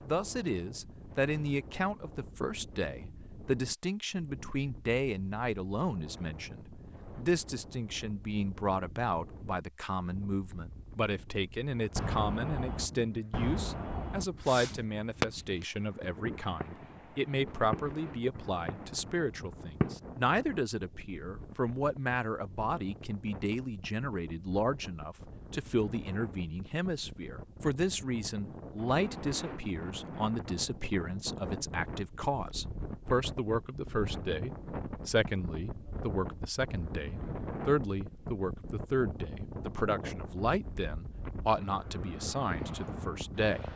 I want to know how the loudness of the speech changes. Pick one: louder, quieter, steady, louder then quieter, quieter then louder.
steady.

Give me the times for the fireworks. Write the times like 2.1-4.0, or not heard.
11.9-19.9.